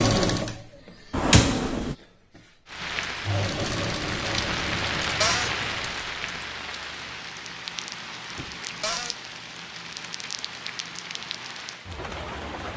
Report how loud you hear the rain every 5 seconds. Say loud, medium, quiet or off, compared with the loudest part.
loud, loud, medium.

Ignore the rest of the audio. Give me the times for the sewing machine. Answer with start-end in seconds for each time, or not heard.
0.0-6.5.